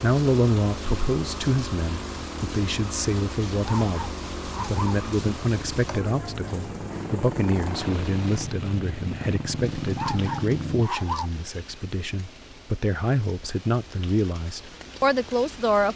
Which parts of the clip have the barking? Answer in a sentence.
You can hear the barking from 3.6 to 5.0 s and from 9.9 to 11.3 s.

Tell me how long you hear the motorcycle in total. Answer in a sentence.
You can hear the motorcycle for 11 seconds altogether.